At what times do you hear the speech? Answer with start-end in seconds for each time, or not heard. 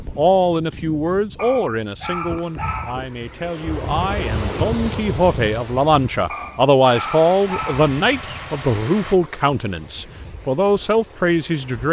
0.0-11.8.